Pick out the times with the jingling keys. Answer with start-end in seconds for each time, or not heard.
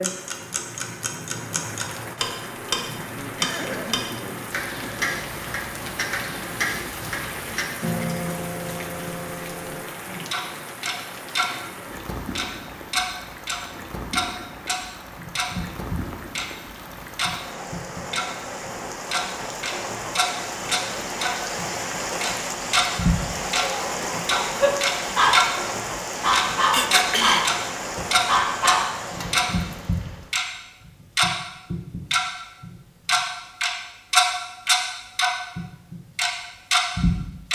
not heard.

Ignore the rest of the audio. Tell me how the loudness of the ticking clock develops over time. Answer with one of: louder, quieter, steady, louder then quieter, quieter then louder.
louder.